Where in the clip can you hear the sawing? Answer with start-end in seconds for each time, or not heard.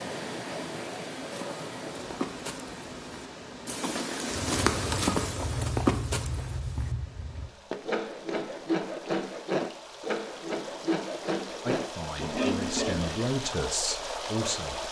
4.3-13.2.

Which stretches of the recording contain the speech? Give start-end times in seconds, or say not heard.
11.6-14.8.